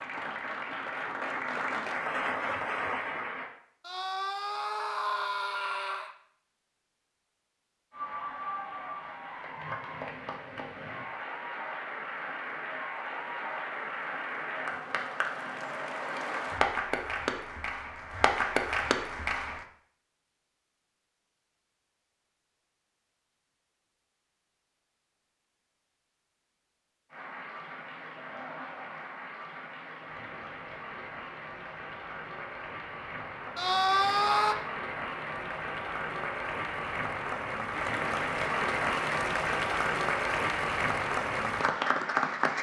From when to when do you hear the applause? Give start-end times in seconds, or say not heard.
0.0-3.5, 7.9-19.6, 27.1-42.5.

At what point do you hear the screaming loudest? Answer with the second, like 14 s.
34 s.